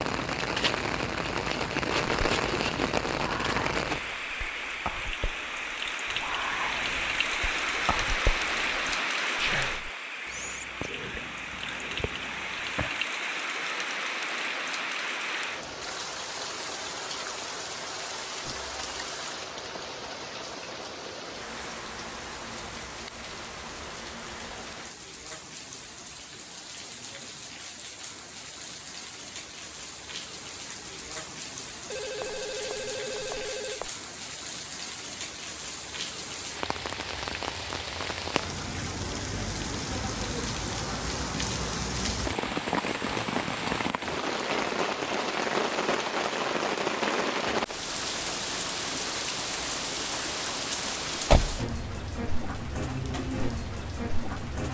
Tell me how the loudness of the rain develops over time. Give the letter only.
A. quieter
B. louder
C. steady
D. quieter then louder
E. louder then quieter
D.